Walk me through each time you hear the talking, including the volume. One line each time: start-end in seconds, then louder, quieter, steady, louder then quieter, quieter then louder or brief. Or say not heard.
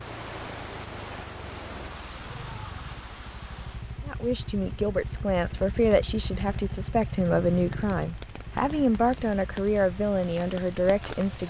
4.0-11.4 steady.